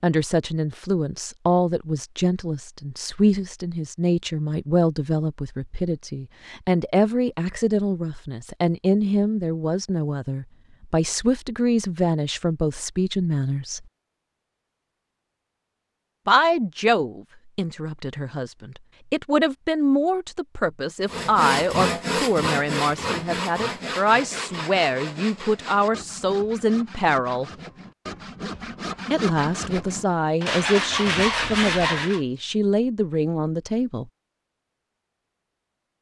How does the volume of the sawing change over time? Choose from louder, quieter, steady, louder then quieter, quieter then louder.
quieter then louder.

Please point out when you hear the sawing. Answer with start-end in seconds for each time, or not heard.
21.1-32.2.